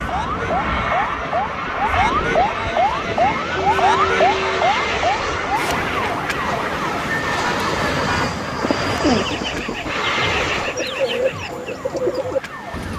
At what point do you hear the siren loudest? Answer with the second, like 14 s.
4 s.